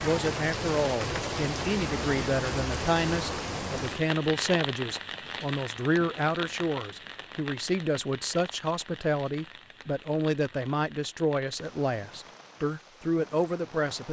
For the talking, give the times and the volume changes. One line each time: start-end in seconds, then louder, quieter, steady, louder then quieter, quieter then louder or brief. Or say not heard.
0.0-14.0 steady.